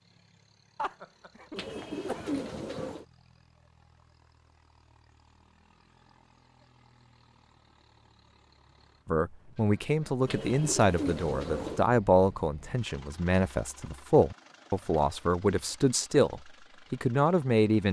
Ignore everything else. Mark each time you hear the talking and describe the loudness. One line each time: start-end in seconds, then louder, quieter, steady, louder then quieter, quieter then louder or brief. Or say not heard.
9.1-17.8 steady.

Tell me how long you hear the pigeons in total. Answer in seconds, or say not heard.
3 s.